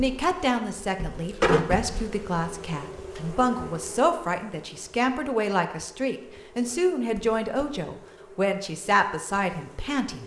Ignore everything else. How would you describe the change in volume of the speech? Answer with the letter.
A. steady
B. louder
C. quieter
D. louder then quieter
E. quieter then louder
A.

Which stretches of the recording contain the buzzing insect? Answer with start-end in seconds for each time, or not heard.
0.0-10.2.